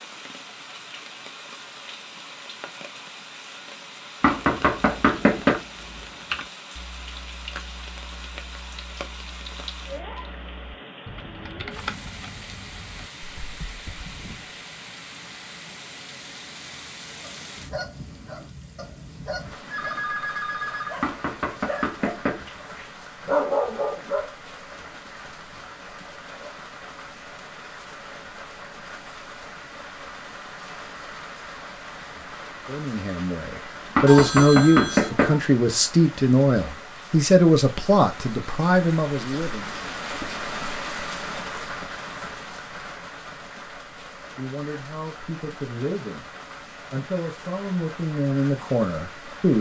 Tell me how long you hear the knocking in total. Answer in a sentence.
The knocking can be heard for 4 seconds in total.